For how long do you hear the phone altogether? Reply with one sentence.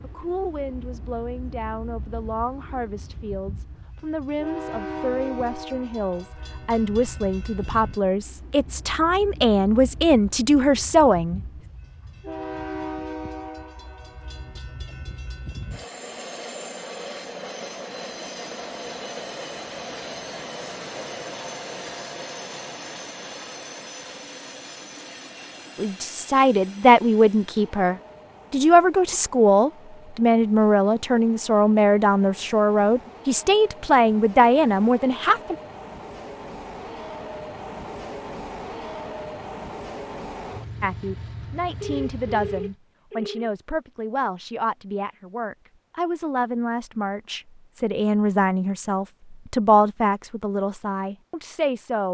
The phone can be heard for 2 seconds in total.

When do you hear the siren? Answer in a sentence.
You can't hear the siren here.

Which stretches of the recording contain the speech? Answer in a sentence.
The speech can be heard from 0.0 to 11.4 s, from 25.8 to 35.5 s and from 40.8 to 52.0 s.